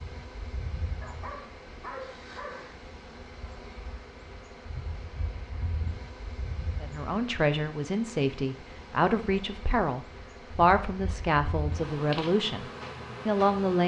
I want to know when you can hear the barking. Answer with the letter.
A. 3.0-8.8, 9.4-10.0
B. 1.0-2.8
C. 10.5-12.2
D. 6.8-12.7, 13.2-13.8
B.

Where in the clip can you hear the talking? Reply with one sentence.
You can hear the talking from 6.8 to 12.7 s and from 13.2 to 13.8 s.